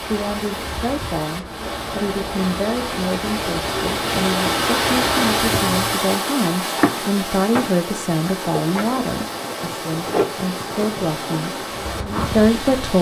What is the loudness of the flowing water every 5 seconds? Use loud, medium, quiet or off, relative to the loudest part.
loud, loud, medium.